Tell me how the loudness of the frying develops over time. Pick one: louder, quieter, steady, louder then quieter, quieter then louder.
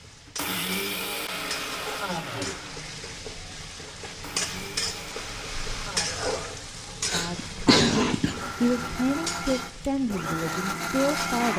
louder then quieter.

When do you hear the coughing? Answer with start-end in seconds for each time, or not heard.
7.0-8.3.